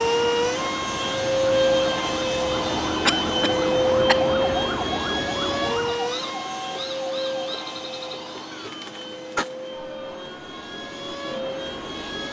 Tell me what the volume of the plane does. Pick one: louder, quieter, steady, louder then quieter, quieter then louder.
quieter.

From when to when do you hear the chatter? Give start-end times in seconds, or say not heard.
not heard.